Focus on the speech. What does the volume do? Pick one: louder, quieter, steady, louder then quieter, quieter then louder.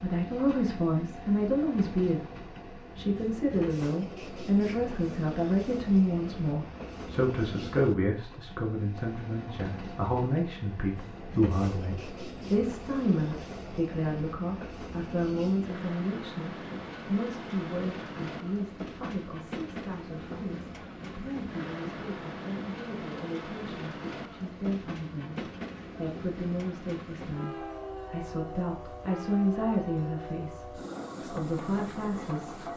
quieter then louder.